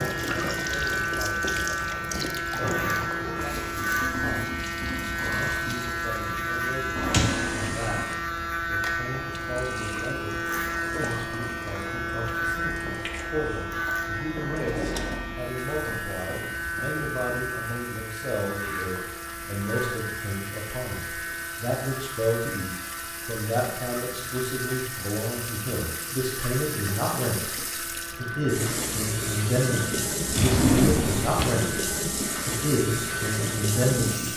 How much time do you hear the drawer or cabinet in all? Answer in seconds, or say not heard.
3 s.